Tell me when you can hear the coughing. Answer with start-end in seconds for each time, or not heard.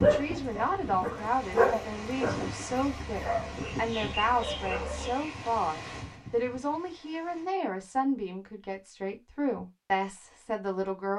not heard.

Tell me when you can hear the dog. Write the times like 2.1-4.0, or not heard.
0.0-5.2.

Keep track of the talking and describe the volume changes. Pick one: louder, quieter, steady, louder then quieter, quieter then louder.
steady.